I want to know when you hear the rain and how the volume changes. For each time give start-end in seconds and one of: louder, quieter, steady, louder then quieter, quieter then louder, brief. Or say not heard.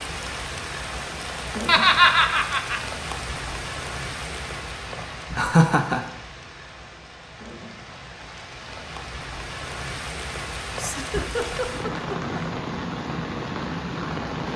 0.0-14.5 quieter then louder.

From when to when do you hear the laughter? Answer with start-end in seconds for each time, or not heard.
1.6-2.8, 5.3-6.0, 10.8-12.3.